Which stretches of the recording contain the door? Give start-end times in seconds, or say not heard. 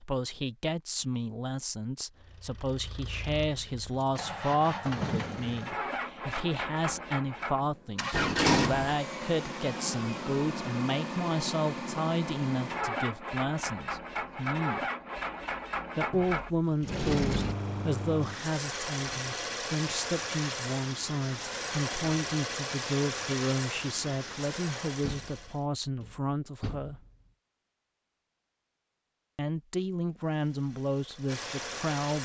8.1-8.9, 16.1-17.6, 25.0-27.1.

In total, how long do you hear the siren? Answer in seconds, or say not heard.
not heard.